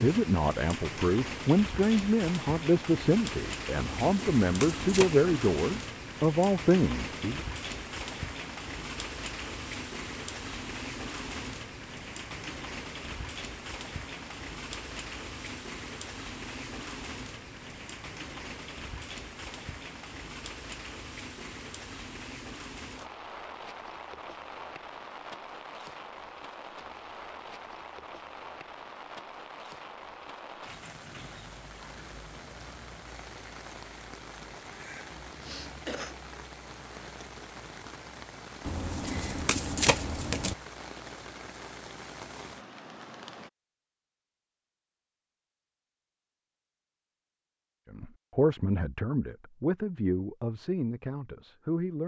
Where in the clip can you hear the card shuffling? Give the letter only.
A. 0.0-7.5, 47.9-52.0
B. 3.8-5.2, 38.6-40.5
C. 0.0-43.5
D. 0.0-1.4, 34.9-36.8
B.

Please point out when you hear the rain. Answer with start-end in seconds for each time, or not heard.
0.0-43.5.